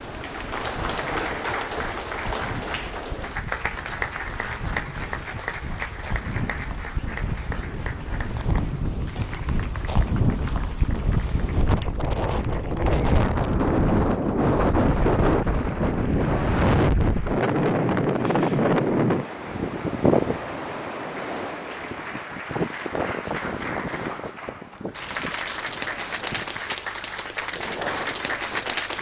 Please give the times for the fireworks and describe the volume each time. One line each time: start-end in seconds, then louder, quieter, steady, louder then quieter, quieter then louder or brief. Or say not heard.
not heard.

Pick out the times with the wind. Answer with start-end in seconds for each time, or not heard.
0.0-28.9.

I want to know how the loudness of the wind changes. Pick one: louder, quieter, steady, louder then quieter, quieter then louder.
louder then quieter.